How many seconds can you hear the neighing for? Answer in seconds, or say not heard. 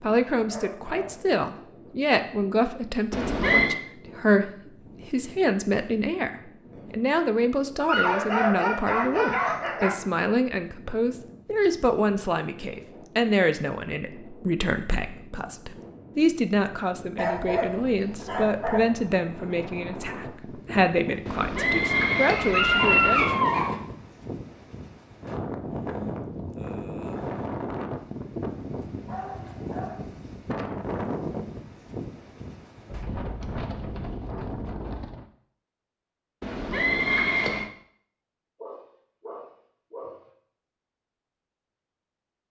4 s.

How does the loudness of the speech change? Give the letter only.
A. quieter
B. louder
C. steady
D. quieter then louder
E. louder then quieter
C.